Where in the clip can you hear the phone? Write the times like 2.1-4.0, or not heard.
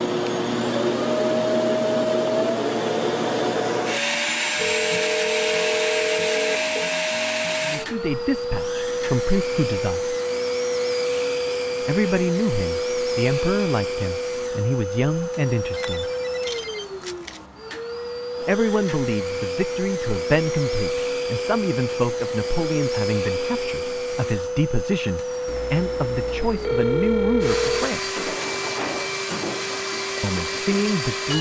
4.5-7.0, 15.7-17.4, 25.4-27.9.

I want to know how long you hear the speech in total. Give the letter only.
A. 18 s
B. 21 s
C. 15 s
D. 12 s
A.